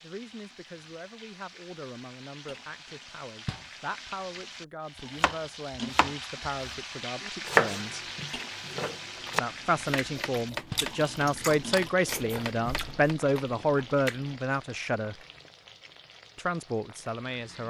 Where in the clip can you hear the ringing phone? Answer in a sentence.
You can't hear the ringing phone here.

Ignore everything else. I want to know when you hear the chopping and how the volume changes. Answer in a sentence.
You can hear the chopping from 5.2 to 13.2 s, getting louder then quieter.